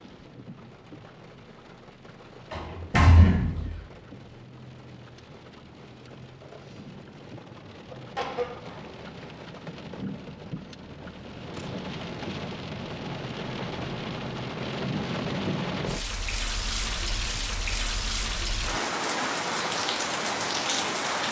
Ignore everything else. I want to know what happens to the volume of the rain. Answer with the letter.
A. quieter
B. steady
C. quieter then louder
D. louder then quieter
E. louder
E.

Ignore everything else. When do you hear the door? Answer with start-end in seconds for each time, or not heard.
2.5-3.8.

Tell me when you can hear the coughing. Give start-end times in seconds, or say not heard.
7.9-8.9.